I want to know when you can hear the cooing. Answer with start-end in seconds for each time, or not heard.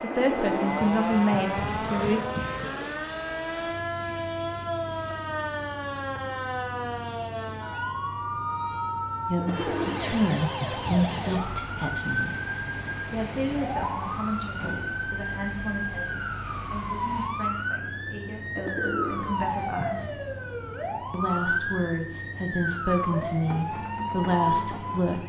0.1-3.0, 9.3-11.4, 18.6-20.1.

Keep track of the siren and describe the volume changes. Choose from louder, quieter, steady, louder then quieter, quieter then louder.
steady.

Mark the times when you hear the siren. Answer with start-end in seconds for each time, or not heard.
0.0-25.2.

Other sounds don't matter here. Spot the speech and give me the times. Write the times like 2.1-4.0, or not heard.
0.0-2.2, 9.2-12.3, 13.1-20.2, 21.1-25.2.